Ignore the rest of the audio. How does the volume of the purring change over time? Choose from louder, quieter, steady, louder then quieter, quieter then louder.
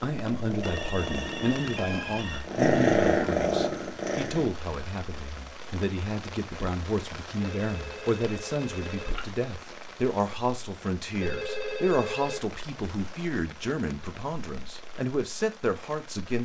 louder then quieter.